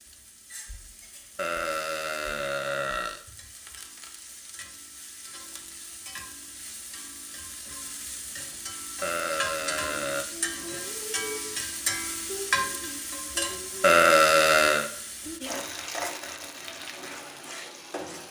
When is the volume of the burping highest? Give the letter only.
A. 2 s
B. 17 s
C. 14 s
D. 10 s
C.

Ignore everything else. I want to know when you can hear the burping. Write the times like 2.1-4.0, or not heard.
1.4-3.2, 9.0-10.2, 13.8-14.9.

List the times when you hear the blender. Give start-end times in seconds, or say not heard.
not heard.